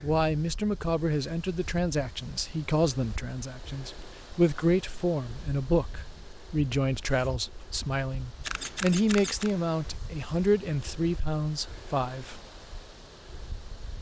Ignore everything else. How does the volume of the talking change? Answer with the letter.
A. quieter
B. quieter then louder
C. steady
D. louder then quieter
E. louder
C.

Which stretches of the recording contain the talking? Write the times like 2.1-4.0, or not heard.
0.0-12.4.